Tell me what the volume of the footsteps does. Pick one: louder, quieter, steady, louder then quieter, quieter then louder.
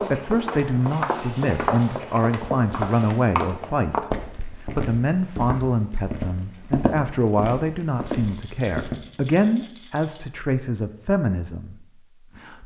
quieter.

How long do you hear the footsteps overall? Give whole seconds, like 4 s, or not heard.
9 s.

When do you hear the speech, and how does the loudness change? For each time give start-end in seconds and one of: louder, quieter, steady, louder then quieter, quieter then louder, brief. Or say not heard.
0.0-12.6 steady.